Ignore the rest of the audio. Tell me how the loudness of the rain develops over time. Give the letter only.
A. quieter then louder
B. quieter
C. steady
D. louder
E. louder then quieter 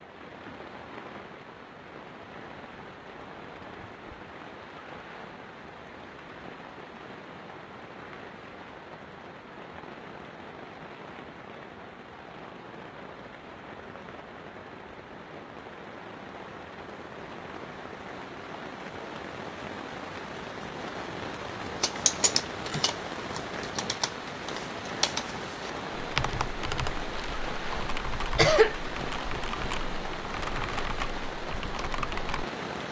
D.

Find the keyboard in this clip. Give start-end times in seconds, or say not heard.
21.8-32.5.